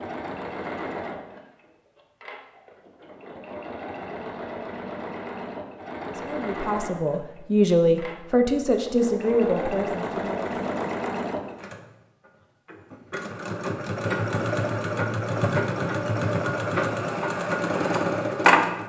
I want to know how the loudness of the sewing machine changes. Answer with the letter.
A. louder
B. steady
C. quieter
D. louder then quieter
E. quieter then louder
A.